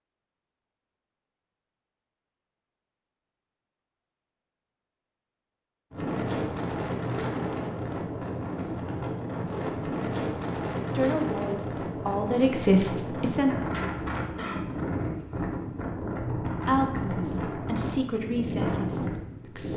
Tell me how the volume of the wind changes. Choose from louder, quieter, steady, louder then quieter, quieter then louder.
steady.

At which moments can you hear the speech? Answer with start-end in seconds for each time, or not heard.
10.8-13.6, 16.6-19.7.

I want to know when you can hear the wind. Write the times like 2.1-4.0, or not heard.
5.9-19.7.